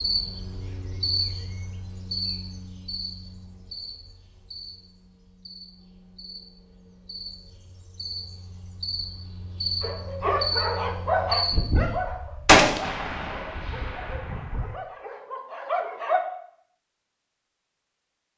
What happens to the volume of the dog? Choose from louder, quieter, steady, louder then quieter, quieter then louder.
quieter then louder.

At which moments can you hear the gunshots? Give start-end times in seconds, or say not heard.
11.5-14.8.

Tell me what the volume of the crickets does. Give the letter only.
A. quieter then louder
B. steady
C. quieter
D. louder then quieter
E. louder
A.